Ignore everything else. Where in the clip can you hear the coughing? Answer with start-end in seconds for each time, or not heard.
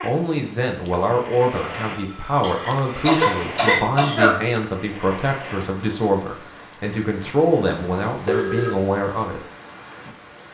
2.4-4.3.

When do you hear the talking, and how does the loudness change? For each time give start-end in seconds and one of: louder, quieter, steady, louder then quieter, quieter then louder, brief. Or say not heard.
0.0-9.4 steady.